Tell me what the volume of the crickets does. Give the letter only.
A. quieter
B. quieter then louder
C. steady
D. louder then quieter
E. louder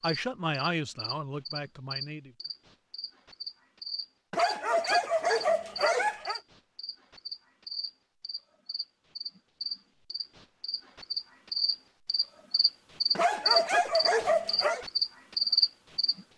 E.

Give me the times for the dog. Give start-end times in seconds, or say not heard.
4.3-6.4, 13.2-14.8.